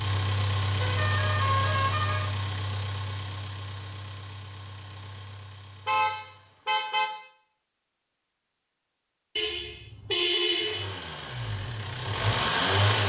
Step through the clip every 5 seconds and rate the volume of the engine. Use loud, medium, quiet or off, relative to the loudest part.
medium, quiet, loud.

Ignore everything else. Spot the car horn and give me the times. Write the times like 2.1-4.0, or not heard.
0.8-2.3, 5.8-7.1, 9.3-10.8.